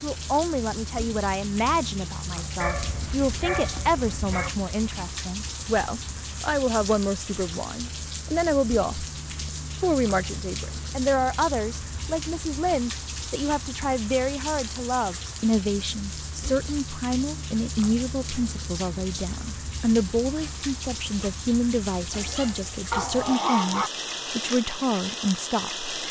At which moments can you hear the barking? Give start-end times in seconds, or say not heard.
2.6-4.5, 22.1-23.9.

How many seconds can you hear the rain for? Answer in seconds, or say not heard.
26 s.